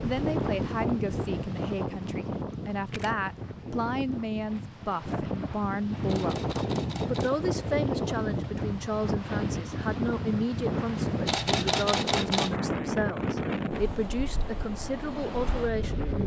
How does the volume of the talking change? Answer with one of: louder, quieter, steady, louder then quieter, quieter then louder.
steady.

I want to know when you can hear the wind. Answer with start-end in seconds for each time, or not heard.
0.0-16.2.